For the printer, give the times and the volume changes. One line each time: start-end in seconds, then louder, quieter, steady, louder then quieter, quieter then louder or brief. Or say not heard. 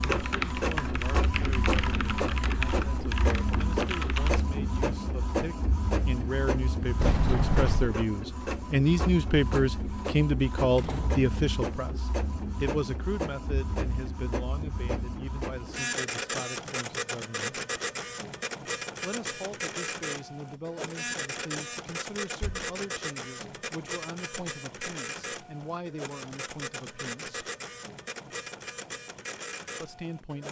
0.0-30.4 quieter.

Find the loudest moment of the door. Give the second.
7 s.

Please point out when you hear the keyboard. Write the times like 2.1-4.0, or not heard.
0.0-4.5.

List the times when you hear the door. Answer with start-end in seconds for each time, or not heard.
7.0-8.0, 10.8-11.3, 22.2-22.7.